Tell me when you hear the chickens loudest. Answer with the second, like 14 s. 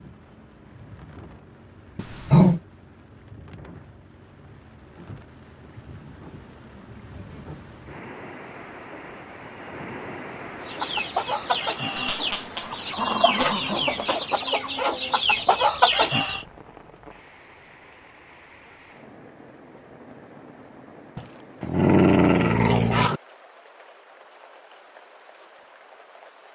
16 s.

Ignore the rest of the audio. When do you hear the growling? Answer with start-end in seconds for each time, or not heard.
1.9-2.6, 11.9-14.2, 21.1-23.2.